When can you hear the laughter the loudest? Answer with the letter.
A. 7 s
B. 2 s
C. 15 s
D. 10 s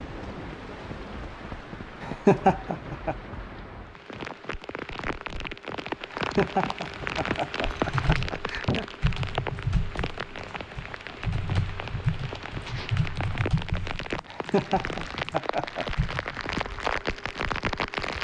B.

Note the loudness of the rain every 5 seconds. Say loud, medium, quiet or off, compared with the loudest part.
medium, loud, medium, loud.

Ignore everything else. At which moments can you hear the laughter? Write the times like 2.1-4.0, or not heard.
2.0-3.1, 6.1-8.8, 14.2-15.8.